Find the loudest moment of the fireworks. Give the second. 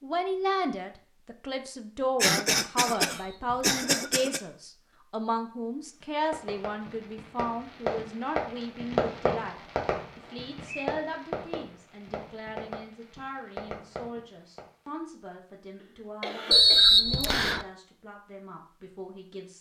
9 s.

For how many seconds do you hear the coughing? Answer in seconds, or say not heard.
3 s.